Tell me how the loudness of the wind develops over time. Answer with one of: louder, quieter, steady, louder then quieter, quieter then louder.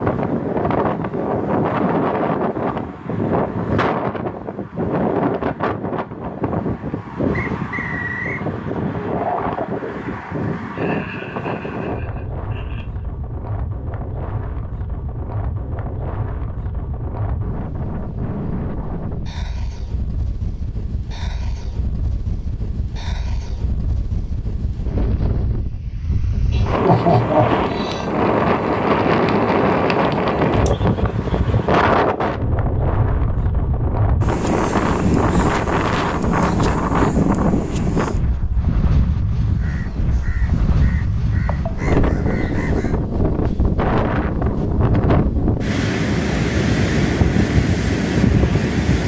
quieter then louder.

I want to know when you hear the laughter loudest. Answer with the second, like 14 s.
27 s.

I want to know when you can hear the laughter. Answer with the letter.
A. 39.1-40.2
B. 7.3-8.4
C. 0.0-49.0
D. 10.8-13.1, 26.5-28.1
D.